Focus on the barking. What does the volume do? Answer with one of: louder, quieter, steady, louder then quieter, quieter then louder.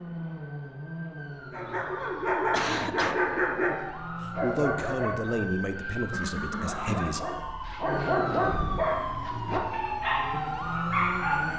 quieter then louder.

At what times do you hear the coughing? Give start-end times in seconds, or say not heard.
2.5-3.2, 6.1-7.2.